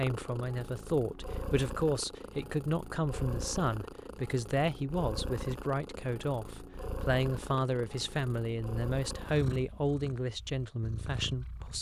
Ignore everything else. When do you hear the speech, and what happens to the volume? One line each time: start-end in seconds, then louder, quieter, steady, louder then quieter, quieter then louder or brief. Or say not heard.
0.0-11.7 steady.